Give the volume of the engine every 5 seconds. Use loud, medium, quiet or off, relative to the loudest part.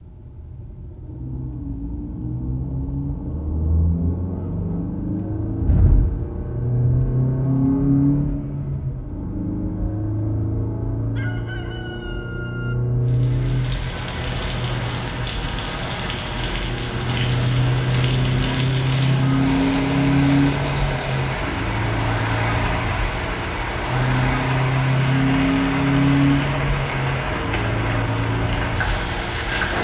medium, loud, loud, loud, loud, loud.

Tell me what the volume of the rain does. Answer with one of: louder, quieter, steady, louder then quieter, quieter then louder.
steady.